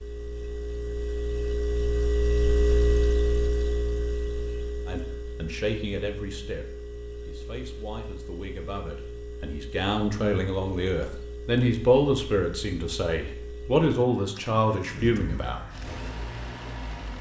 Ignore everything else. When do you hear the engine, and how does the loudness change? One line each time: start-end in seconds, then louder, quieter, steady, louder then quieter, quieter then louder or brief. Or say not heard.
0.0-17.1 quieter.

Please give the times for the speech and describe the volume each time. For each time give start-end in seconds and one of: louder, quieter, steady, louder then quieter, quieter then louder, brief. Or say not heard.
4.8-15.6 quieter then louder.